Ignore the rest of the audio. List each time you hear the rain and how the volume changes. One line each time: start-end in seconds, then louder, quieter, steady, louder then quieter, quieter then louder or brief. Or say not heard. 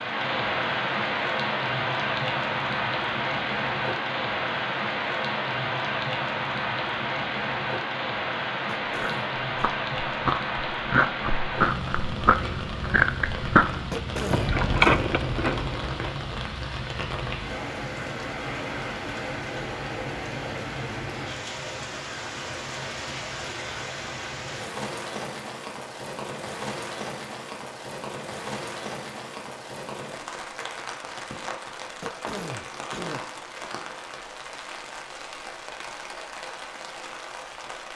0.0-37.9 quieter.